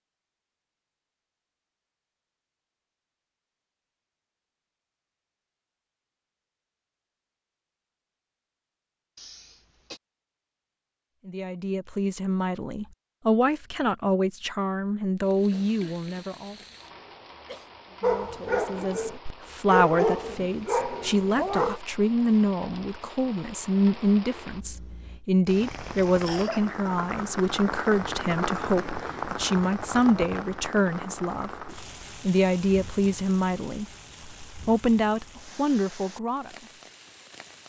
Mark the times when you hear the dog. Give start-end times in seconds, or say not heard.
18.0-21.8.